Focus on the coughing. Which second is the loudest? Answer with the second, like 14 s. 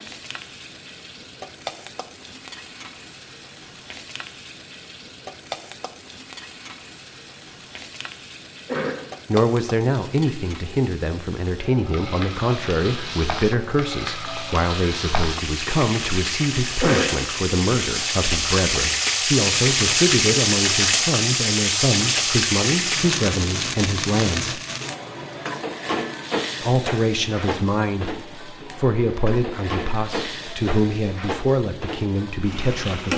17 s.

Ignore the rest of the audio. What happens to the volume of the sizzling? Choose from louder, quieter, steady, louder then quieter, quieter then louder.
louder then quieter.